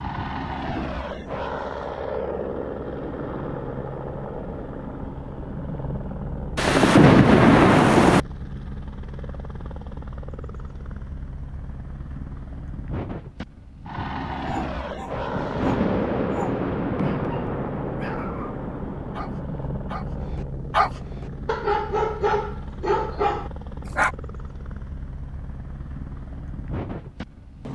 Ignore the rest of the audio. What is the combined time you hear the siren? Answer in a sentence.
The siren can't be heard in this clip.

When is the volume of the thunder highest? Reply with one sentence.
The loudest moment of the thunder is at 7 seconds.